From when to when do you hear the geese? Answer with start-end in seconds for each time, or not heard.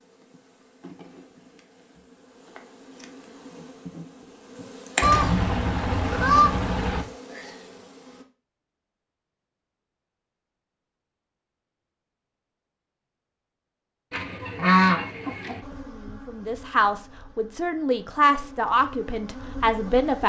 5.0-7.0, 14.1-15.6.